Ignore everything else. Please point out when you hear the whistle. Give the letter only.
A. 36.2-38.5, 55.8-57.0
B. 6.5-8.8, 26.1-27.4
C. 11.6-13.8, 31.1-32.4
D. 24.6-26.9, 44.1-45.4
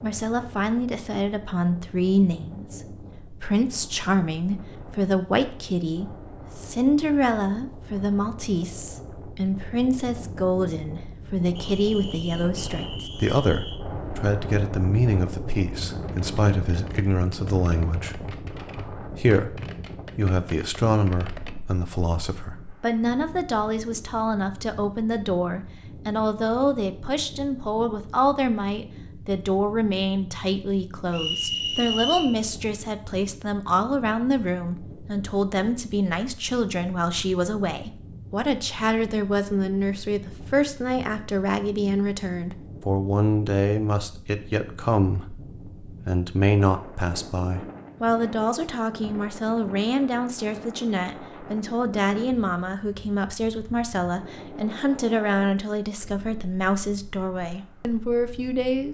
C.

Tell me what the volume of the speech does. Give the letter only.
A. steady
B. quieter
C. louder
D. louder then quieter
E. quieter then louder
A.